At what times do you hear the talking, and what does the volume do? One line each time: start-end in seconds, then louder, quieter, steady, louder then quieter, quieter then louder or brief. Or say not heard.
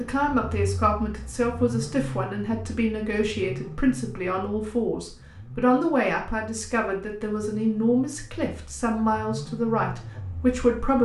0.0-10.9 steady.